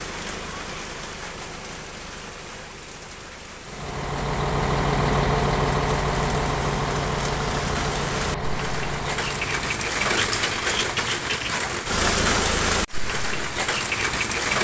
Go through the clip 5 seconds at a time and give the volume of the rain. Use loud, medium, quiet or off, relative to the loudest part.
quiet, medium, loud.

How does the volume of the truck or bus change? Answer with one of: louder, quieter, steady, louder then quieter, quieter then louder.
quieter.